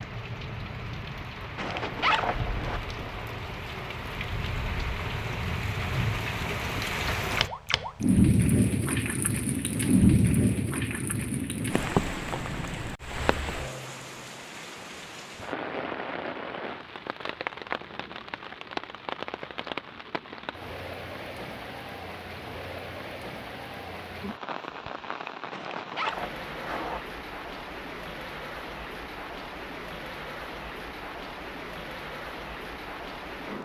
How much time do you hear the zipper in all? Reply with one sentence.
You can hear the zipper for 3 seconds altogether.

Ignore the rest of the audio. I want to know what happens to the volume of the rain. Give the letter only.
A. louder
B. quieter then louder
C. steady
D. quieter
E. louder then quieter
E.